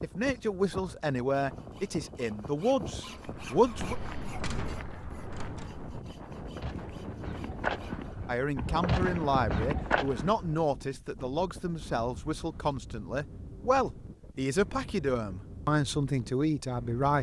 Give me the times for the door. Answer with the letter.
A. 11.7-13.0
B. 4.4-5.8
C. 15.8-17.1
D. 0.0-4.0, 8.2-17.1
B.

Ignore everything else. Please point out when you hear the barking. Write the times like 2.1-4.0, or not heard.
not heard.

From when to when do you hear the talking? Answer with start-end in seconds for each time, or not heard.
0.0-4.0, 8.2-17.1.